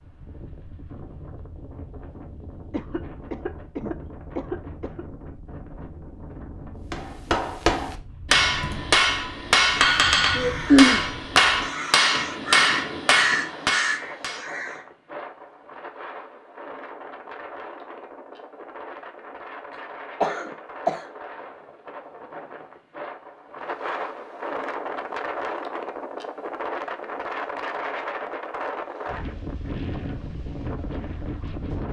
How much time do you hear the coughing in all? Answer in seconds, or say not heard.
4 s.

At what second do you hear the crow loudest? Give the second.
11 s.